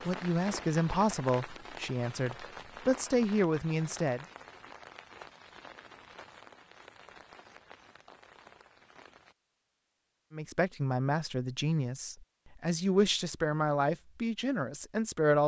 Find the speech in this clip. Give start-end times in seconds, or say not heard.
0.1-4.2, 10.3-15.4.